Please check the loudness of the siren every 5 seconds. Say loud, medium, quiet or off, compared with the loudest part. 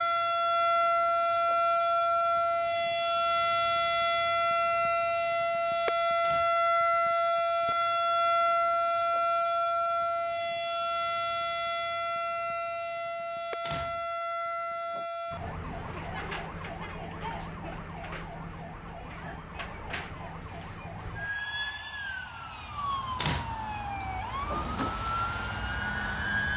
loud, loud, medium, quiet, medium, medium.